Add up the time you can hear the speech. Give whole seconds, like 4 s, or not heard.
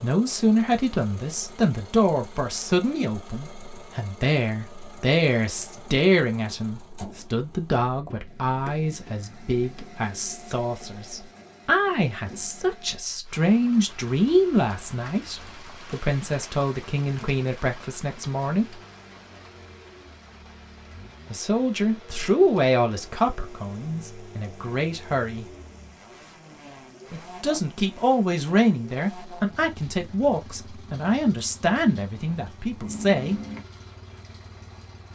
29 s.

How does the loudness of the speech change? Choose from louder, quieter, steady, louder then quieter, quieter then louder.
steady.